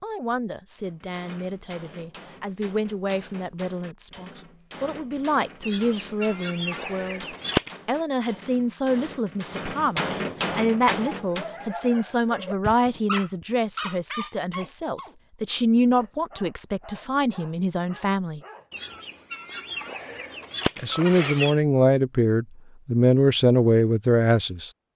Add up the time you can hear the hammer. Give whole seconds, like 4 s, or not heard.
11 s.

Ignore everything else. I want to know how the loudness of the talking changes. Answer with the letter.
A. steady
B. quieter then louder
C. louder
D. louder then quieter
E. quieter
C.